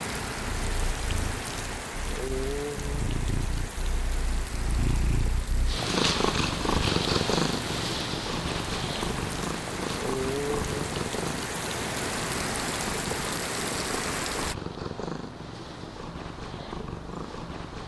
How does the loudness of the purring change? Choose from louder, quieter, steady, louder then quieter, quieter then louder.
louder then quieter.